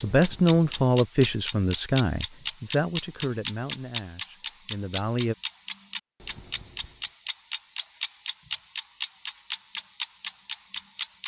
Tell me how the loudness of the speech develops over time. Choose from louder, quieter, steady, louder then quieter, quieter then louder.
quieter.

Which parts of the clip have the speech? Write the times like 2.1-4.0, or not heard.
0.0-5.3.